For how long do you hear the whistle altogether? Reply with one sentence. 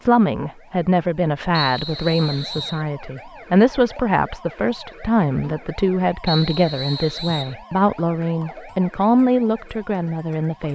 You can hear the whistle for 3 seconds altogether.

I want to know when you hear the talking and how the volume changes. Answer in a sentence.
The talking can be heard from 0.0 to 10.7 s, at a steady volume.